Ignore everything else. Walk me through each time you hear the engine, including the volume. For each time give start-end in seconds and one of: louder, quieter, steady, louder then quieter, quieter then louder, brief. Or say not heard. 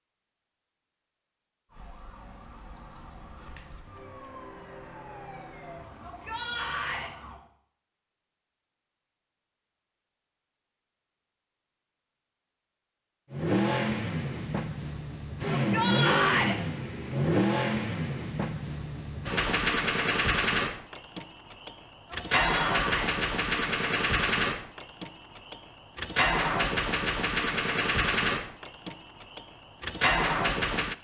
13.3-30.9 steady.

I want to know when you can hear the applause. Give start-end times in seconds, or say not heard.
not heard.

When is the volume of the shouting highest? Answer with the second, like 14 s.
16 s.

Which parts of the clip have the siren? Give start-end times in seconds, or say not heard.
1.6-7.4.